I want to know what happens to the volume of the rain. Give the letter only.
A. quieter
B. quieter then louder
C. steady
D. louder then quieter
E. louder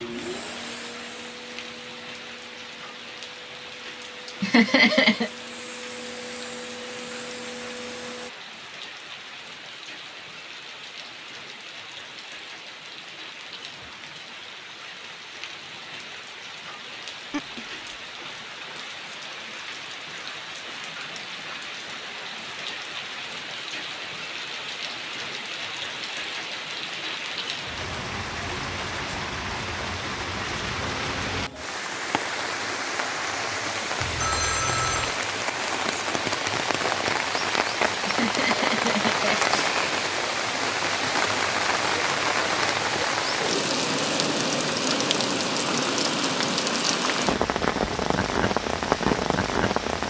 E.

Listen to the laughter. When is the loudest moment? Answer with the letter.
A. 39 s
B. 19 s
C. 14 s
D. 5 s
D.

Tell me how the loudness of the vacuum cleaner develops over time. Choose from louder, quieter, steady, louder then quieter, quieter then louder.
quieter then louder.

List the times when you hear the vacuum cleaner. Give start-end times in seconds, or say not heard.
0.0-8.3.